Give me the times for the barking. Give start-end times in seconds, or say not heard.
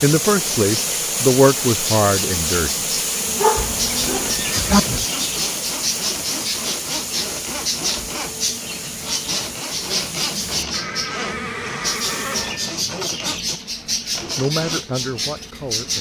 3.4-4.8.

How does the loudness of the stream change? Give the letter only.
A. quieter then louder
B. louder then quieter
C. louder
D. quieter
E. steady
D.